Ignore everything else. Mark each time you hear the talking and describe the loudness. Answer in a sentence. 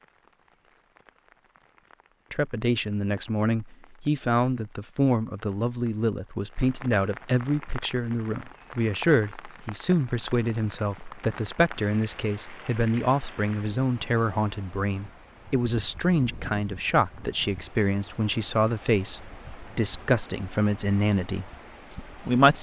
You can hear the talking from 2.3 to 22.5 s, at a steady volume.